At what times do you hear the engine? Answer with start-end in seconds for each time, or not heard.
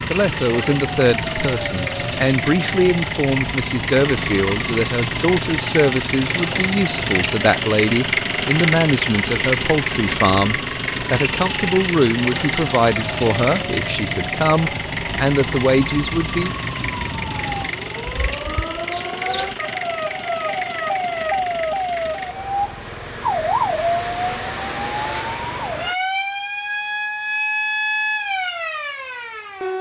0.0-25.9.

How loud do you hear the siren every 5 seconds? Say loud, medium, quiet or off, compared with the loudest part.
medium, medium, medium, medium, loud, loud.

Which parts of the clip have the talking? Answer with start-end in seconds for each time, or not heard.
0.1-16.6.